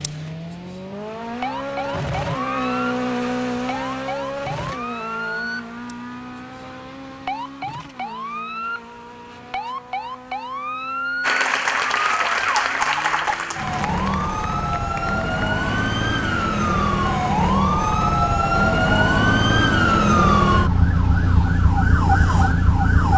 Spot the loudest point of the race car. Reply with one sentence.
The loudest moment of the race car is at 3 seconds.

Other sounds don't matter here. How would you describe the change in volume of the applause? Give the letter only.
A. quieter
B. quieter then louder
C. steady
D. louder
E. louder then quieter
A.